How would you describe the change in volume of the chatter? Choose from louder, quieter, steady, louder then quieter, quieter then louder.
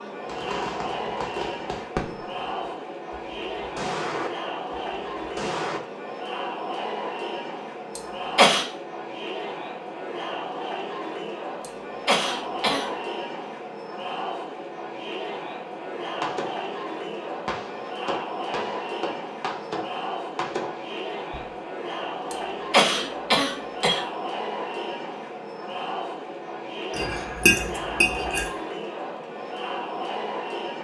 steady.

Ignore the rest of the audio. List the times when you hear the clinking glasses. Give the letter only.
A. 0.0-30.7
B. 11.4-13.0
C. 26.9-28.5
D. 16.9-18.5
C.